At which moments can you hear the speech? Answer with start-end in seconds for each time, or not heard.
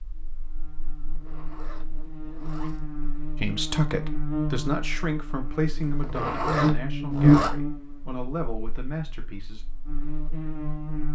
3.4-9.7.